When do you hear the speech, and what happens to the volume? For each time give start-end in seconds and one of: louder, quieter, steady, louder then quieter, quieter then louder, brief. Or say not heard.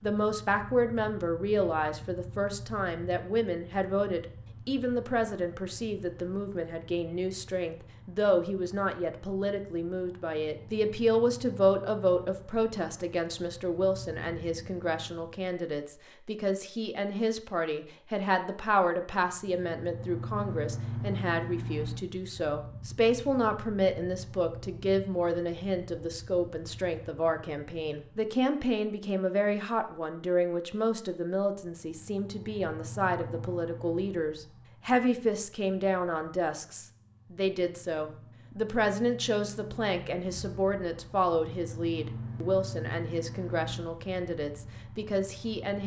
0.0-45.8 steady.